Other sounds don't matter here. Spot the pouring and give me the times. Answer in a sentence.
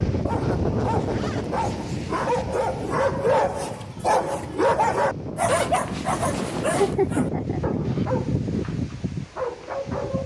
The pouring can't be heard in this clip.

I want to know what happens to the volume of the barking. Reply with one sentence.
The volume of the barking goes up, then down.